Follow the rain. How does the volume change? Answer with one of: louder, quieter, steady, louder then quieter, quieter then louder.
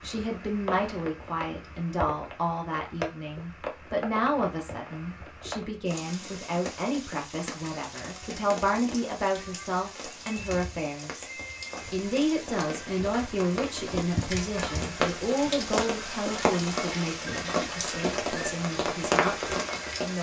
louder.